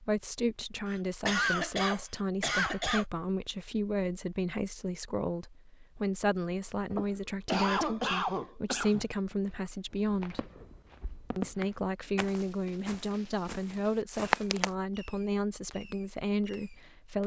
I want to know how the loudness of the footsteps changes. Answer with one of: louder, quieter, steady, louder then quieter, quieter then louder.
louder.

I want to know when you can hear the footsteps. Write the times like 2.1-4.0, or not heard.
7.8-14.7.